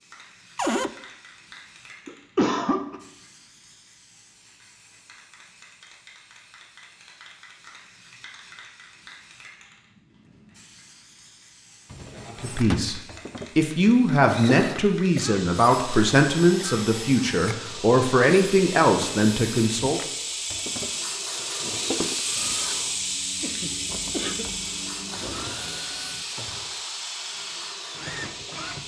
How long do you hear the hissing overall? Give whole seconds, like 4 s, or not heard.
29 s.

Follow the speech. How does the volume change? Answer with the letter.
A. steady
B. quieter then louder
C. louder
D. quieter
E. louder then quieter
A.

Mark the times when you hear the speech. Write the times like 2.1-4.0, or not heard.
12.4-20.0.